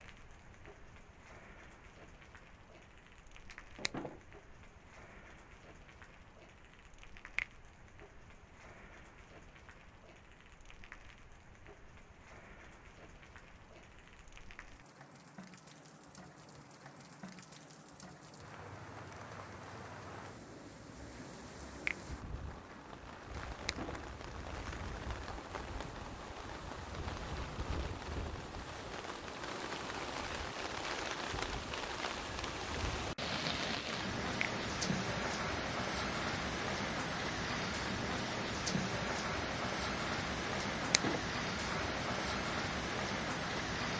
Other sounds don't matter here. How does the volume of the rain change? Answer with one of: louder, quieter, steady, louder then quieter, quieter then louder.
louder.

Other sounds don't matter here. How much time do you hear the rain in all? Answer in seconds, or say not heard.
44 s.